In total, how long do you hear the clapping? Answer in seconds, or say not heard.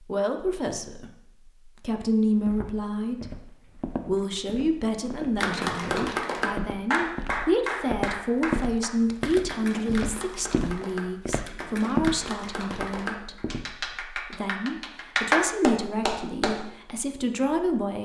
11 s.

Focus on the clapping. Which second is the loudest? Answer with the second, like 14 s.
15 s.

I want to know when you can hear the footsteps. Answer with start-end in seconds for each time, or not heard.
2.3-14.0.